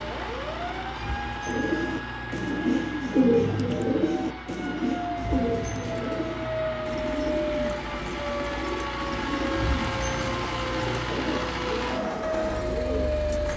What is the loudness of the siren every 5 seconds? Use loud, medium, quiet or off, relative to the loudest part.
medium, loud, loud.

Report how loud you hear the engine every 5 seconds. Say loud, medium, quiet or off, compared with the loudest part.
medium, loud, loud.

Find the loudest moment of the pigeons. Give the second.
3 s.